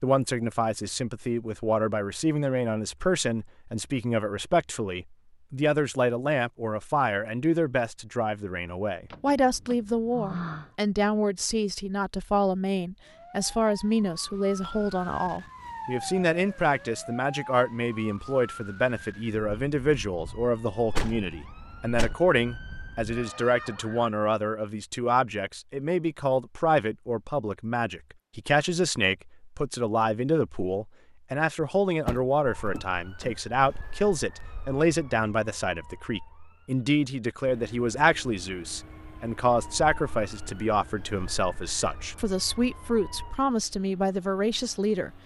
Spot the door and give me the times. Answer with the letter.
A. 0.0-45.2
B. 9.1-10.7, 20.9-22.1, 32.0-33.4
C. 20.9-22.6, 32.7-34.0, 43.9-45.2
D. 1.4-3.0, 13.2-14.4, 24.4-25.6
B.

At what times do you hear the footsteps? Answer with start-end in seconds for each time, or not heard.
not heard.